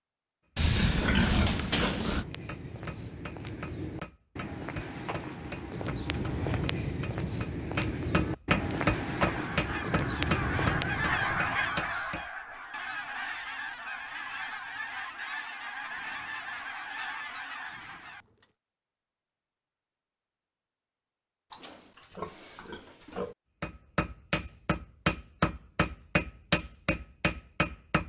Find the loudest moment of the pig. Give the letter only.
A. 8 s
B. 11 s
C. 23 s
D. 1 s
D.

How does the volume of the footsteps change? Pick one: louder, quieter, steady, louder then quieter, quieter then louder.
louder.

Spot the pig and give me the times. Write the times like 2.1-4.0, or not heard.
0.6-2.2, 21.5-23.4.